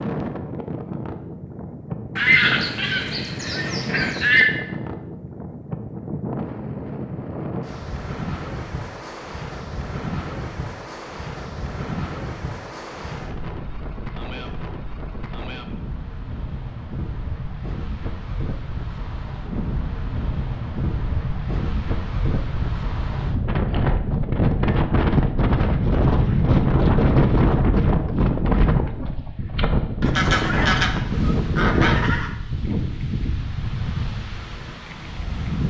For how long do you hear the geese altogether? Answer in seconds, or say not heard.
5 s.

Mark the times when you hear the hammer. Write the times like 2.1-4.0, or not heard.
not heard.